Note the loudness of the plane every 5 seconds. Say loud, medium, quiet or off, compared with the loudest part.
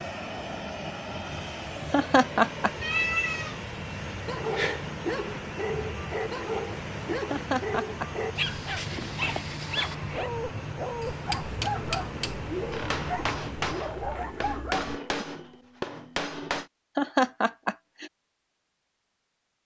loud, loud, loud, off.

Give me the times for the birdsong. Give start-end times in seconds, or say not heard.
not heard.